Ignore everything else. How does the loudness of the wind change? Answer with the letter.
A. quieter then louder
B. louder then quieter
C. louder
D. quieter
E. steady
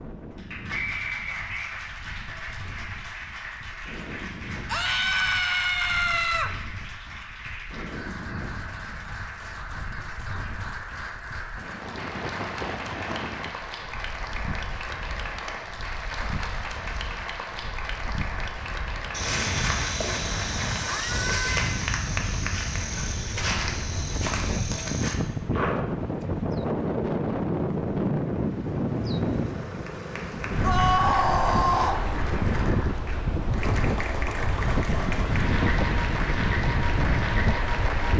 C.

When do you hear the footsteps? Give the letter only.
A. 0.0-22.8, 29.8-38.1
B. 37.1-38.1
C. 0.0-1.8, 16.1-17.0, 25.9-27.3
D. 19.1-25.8
D.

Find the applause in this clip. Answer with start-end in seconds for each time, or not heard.
0.0-22.8, 29.8-38.1.